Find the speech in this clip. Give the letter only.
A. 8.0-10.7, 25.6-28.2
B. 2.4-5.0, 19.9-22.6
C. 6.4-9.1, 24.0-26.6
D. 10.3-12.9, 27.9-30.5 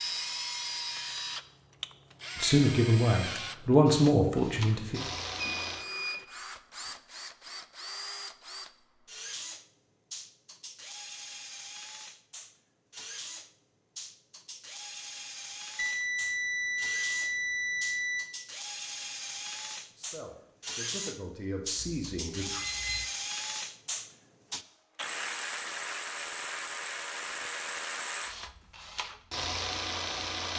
B.